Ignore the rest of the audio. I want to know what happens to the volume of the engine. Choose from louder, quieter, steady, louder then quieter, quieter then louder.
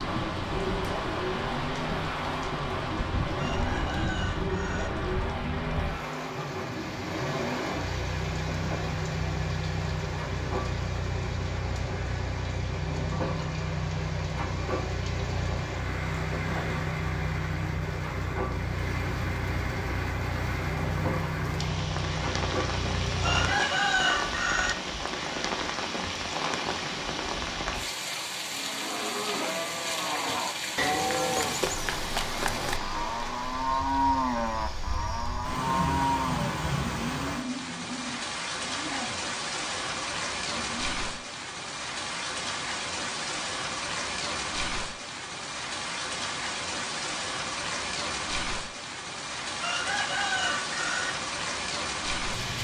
steady.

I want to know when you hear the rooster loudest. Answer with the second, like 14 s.
24 s.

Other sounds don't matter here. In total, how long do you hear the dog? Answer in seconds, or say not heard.
not heard.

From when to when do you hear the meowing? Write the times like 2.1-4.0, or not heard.
not heard.